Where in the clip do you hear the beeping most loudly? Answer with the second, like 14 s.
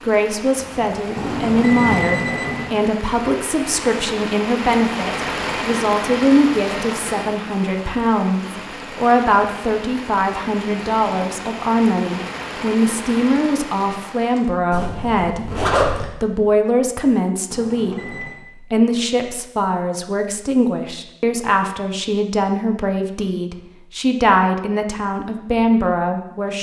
2 s.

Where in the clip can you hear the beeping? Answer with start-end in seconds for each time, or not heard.
1.1-2.8, 17.5-18.4.